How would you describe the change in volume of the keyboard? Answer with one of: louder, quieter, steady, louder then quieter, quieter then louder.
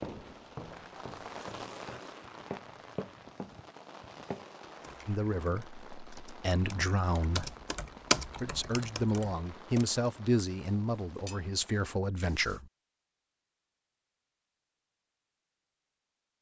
louder then quieter.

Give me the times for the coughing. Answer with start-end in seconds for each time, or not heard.
not heard.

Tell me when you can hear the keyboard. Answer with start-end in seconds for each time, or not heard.
4.8-10.0.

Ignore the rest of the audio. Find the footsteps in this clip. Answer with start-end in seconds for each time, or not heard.
0.0-4.5.